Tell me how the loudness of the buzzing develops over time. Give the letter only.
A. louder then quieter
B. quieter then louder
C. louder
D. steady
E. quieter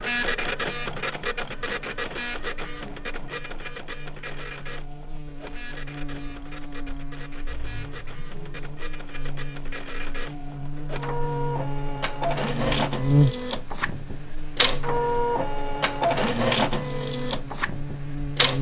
A.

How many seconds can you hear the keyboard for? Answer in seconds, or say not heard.
not heard.